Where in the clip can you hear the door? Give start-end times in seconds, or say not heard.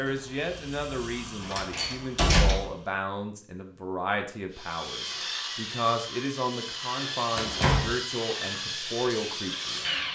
1.4-2.6, 7.3-8.0.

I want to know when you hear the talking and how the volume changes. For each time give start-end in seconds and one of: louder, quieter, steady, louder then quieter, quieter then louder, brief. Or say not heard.
0.0-10.0 steady.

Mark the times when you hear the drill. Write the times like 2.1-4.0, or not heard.
4.5-10.0.